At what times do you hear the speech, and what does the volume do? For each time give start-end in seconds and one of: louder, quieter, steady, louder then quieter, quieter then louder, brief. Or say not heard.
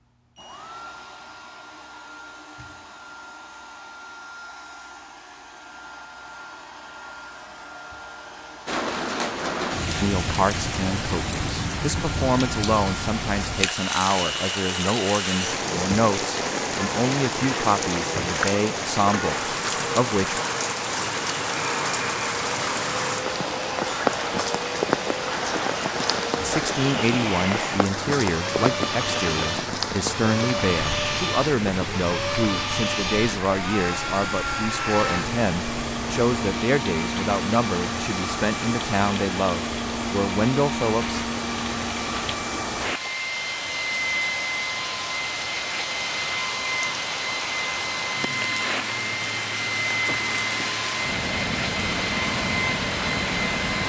10.0-20.4 steady
26.4-41.2 steady.